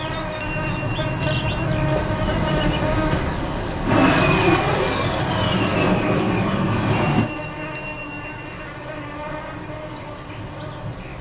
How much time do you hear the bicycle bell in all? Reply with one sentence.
The bicycle bell can be heard for 3 seconds in total.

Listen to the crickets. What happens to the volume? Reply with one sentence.
The volume of the crickets goes down.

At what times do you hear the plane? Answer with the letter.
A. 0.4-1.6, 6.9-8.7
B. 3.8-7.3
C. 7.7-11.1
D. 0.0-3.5
B.